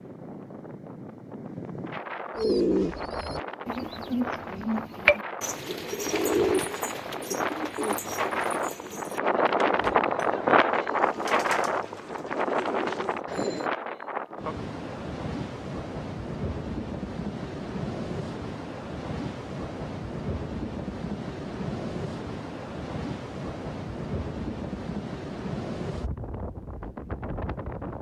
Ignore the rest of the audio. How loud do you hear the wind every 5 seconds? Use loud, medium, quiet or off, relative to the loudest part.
medium, loud, loud, medium, medium, medium.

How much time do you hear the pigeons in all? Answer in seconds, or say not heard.
11 s.